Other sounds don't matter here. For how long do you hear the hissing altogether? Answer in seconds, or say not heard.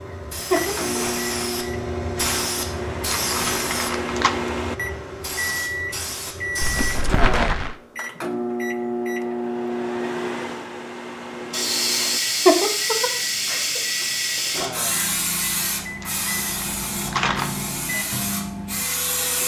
15 s.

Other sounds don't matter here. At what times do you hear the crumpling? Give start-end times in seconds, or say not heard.
3.1-4.3, 6.6-7.8, 16.0-17.5.